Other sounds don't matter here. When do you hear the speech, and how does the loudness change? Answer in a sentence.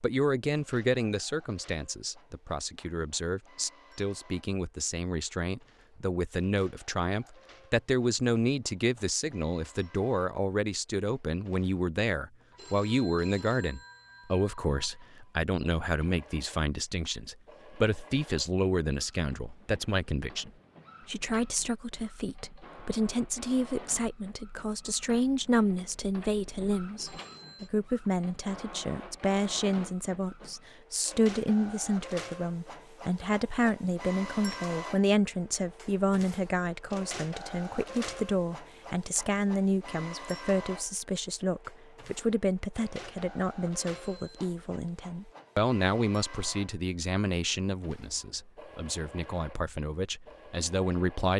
You can hear the speech from 0.0 to 51.3 s, at a steady volume.